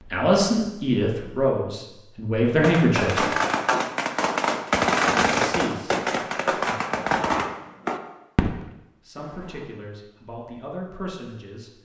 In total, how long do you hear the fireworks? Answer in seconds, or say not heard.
7 s.